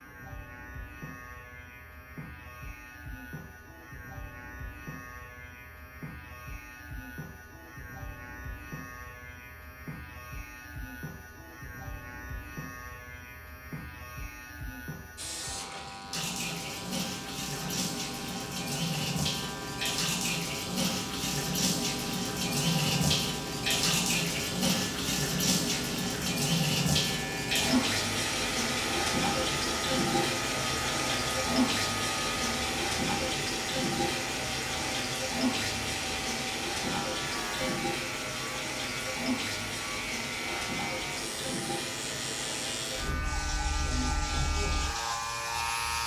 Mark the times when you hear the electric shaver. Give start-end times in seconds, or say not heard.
0.0-46.0.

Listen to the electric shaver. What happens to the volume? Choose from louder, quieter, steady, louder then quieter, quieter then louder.
louder.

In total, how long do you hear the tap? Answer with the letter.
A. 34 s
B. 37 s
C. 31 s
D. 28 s
C.